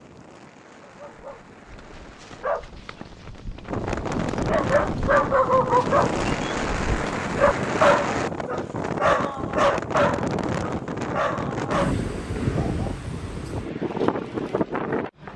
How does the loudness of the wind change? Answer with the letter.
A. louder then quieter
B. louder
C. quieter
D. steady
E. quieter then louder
B.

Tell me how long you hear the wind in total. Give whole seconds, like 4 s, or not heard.
15 s.